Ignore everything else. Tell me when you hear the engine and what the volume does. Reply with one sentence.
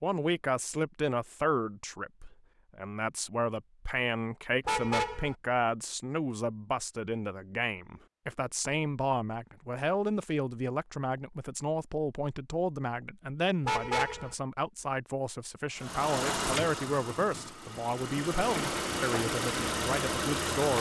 You can hear the engine from 15.8 to 20.7 s, getting quieter then louder.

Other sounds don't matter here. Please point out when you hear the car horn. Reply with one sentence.
You can hear the car horn from 4.7 to 5.3 s and from 13.7 to 14.3 s.